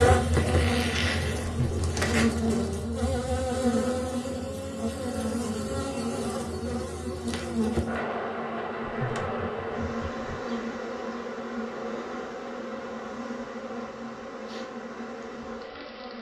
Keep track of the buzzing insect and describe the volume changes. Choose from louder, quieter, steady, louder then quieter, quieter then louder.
quieter.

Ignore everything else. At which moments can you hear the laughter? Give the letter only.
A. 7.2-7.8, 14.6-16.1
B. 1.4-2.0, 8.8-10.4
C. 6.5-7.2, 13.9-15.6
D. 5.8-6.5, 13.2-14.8
B.